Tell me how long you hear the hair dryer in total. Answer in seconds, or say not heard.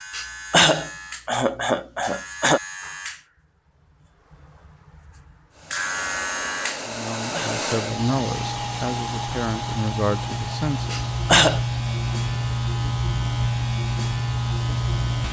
10 s.